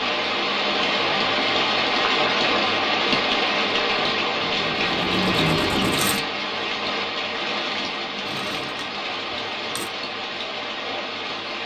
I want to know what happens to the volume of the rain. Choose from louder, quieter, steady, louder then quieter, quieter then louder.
quieter.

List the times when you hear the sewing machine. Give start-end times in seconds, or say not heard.
4.3-6.2, 8.2-9.9.